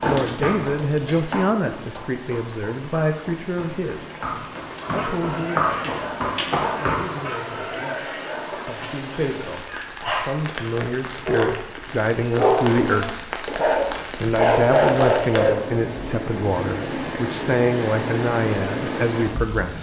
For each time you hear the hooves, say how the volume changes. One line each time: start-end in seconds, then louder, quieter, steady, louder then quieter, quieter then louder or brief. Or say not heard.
0.0-7.2 quieter then louder.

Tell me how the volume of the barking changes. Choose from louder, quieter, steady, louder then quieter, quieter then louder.
louder.